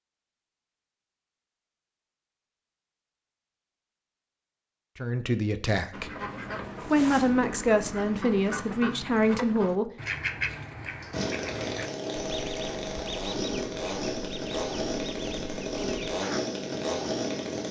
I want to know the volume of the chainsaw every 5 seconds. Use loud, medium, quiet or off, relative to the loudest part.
off, off, loud, loud.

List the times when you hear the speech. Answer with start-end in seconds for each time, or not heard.
5.0-6.1, 6.8-9.9.